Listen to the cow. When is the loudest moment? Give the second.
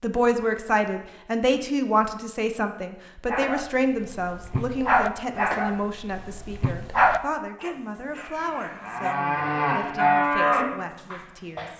10 s.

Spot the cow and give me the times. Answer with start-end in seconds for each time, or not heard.
8.2-11.7.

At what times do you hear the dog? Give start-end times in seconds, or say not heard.
3.2-9.2.